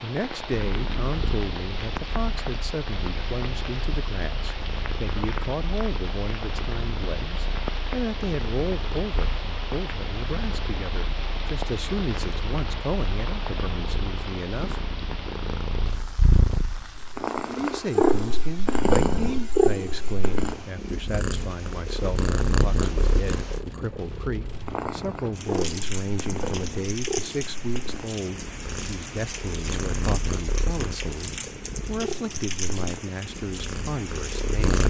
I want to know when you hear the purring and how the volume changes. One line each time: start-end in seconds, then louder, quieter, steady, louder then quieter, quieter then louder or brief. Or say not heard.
0.2-34.8 louder then quieter.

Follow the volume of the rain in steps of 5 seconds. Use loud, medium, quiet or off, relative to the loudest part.
loud, loud, loud, medium, medium, loud, loud.